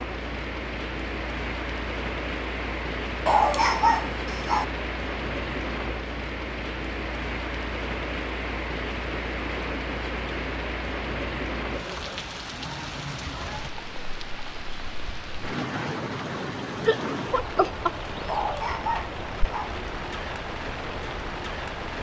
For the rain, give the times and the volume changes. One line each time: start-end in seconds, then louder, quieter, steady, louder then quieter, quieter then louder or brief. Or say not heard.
0.0-21.9 steady.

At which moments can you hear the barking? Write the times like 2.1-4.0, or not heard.
3.2-4.7, 18.2-19.7.